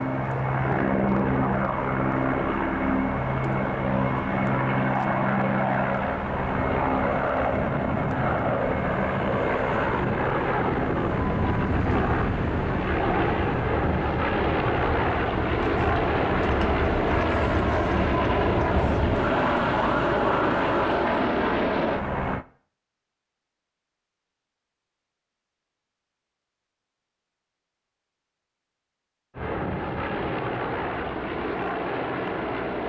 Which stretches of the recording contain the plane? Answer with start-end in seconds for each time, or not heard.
0.0-22.4, 29.4-32.8.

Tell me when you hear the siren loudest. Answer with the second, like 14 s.
20 s.